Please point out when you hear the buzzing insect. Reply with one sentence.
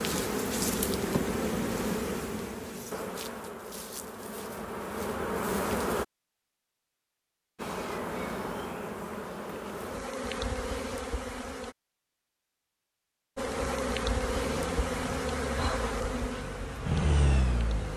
The buzzing insect can be heard from 0.0 to 6.0 s, from 7.5 to 11.8 s and from 13.3 to 17.9 s.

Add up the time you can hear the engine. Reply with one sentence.
You can hear the engine for 4 seconds altogether.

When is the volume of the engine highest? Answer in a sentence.
The volume of the engine peaks at 17 seconds.